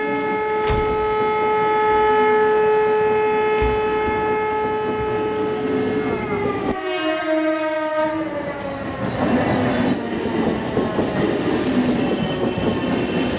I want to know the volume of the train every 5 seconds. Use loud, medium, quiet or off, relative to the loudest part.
medium, loud, loud.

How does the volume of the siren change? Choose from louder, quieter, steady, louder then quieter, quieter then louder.
quieter.